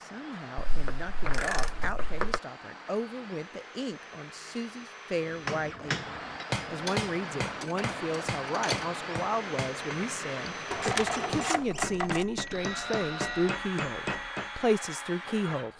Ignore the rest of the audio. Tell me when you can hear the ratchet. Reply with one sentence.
You can hear the ratchet from 0.6 to 2.4 s, from 6.8 to 8.8 s and from 10.7 to 12.2 s.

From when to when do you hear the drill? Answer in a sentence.
You can hear the drill from 0.0 to 15.7 s.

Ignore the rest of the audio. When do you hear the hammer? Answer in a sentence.
You can hear the hammer from 5.3 to 14.7 s.